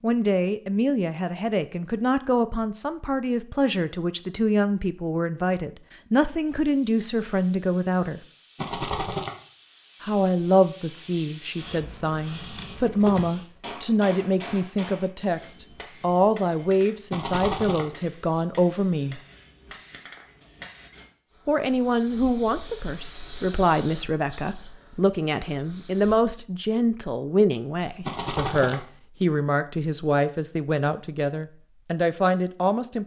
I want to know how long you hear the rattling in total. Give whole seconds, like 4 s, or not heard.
2 s.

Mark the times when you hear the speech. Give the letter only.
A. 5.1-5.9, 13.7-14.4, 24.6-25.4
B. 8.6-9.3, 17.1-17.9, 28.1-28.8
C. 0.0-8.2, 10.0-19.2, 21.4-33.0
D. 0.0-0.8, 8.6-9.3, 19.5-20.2
C.